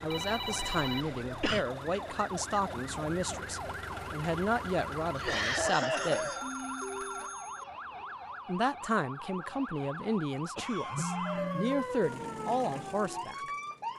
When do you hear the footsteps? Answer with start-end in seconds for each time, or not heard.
not heard.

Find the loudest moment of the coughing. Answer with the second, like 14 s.
6 s.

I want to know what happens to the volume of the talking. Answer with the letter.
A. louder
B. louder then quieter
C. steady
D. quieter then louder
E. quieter
C.